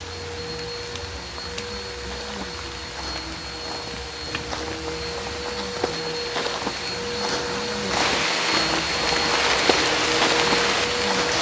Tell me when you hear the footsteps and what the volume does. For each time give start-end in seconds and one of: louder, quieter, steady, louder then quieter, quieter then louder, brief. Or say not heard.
1.9-11.3 louder.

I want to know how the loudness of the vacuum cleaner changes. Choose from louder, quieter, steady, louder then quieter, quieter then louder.
louder.